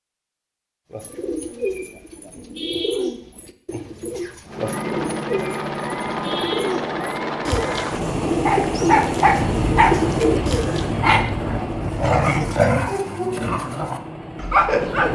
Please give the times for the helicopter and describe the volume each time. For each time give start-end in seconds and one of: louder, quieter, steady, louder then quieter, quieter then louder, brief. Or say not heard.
4.5-15.1 quieter.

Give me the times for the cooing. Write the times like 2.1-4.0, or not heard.
0.9-10.9.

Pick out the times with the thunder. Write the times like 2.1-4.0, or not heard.
9.2-12.6.